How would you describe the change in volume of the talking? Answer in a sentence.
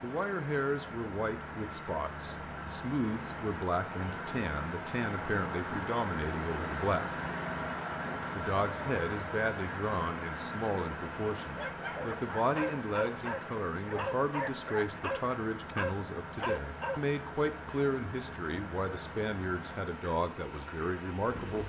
The loudness of the talking stays about the same.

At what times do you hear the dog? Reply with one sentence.
You can hear the dog from 11.6 to 17.0 s.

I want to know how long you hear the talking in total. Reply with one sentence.
You can hear the talking for 20 seconds altogether.